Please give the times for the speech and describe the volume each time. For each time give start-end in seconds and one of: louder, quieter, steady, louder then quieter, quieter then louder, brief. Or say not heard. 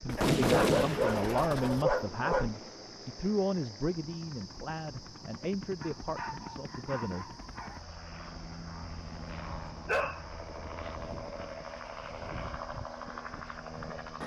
0.0-7.3 quieter.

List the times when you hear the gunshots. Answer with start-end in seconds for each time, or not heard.
0.1-1.9.